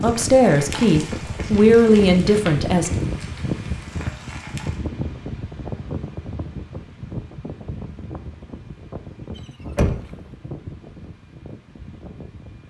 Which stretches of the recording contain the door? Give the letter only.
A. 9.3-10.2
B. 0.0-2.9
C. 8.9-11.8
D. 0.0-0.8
A.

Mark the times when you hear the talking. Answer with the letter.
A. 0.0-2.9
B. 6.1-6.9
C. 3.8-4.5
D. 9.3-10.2
A.